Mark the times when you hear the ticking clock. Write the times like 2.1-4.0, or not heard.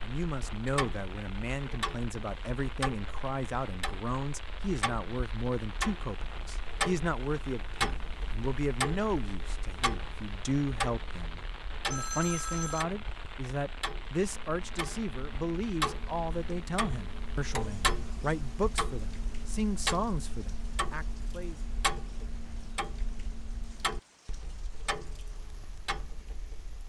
0.0-26.8.